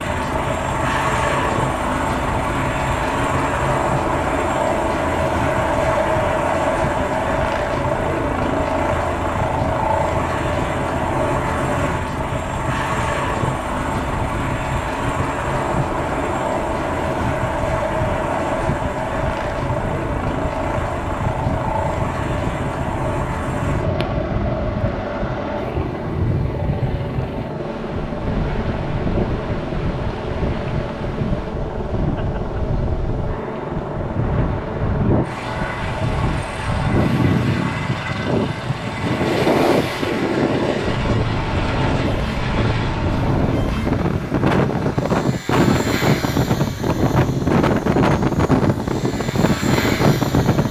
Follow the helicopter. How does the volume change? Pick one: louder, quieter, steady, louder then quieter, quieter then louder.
quieter.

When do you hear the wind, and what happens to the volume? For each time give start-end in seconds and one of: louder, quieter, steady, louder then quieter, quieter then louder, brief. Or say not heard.
0.0-50.6 louder.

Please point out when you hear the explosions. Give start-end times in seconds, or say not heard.
not heard.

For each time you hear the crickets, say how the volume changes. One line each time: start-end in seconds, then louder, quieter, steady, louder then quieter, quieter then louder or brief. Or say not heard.
not heard.